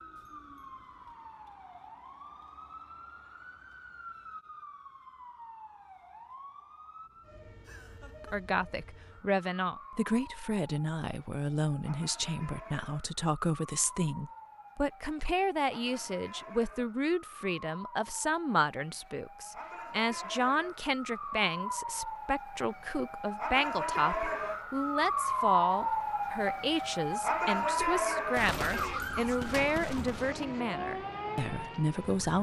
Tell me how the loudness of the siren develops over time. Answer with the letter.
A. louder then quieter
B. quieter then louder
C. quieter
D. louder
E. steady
D.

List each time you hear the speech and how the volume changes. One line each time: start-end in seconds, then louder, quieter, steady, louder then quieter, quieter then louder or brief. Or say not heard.
8.2-32.3 steady.